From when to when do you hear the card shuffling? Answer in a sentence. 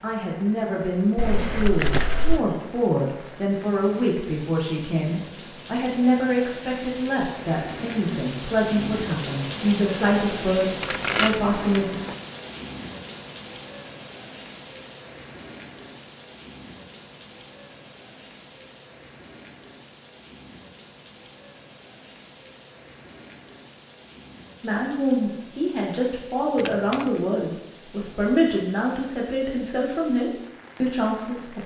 You can hear the card shuffling from 1.1 to 2.4 s, from 10.8 to 12.2 s and from 26.6 to 27.1 s.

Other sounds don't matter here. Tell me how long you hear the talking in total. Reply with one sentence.
The talking can be heard for 19 seconds in total.